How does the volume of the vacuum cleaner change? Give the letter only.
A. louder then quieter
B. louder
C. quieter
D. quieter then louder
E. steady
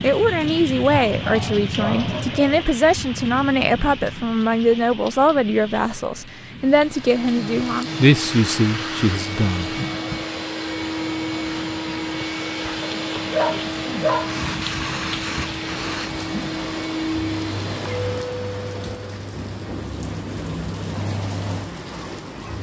E.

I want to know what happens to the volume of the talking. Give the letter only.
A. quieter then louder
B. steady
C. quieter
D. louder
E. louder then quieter
B.